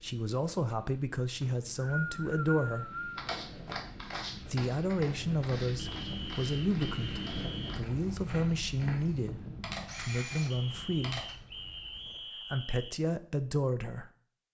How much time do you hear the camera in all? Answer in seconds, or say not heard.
2 s.